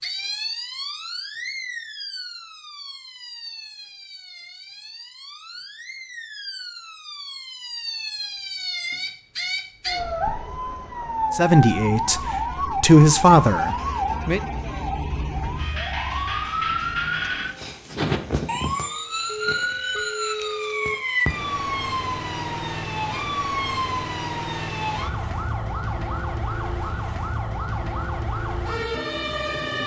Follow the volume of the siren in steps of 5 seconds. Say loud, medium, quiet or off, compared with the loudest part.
medium, medium, loud, loud, loud, loud.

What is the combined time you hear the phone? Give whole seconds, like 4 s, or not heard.
2 s.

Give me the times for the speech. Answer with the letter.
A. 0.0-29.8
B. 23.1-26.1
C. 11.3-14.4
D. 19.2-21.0
C.